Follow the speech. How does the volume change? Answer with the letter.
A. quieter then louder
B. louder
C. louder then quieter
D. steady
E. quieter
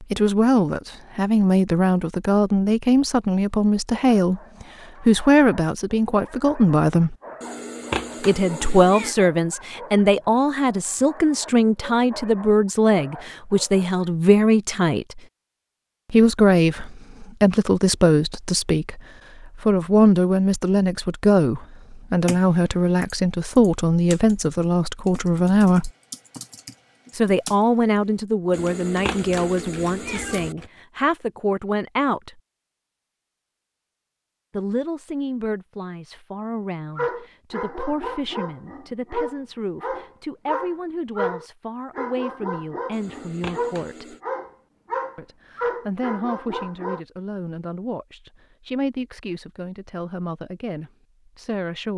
E.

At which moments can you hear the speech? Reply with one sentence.
The speech can be heard from 0.0 to 7.2 s, from 8.2 to 15.2 s, from 16.1 to 25.9 s, from 27.1 to 32.4 s, from 34.5 to 44.1 s and from 45.1 to 51.9 s.